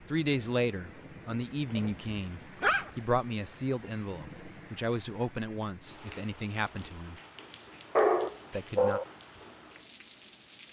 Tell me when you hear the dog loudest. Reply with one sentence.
The volume of the dog peaks at 8 seconds.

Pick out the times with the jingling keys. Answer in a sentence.
You can't hear the jingling keys here.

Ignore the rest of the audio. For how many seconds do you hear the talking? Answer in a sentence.
The talking can be heard for 8 seconds in total.